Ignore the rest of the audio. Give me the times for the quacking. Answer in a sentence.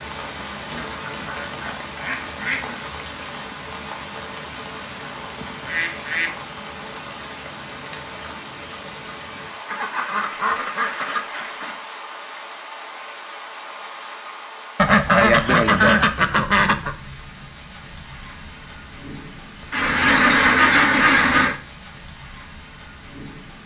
The quacking can be heard from 0.7 to 2.8 s, from 5.5 to 6.3 s, from 9.7 to 11.8 s, from 14.8 to 16.9 s and from 19.7 to 21.6 s.